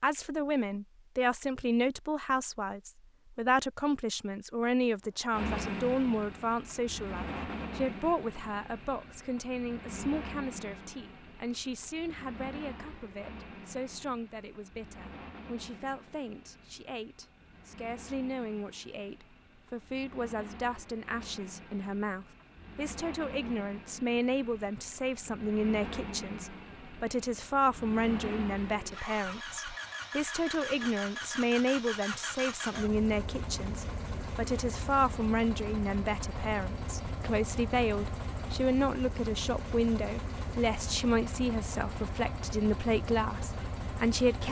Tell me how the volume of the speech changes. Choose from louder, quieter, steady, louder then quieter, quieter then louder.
quieter then louder.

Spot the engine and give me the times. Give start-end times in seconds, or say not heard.
5.3-44.4.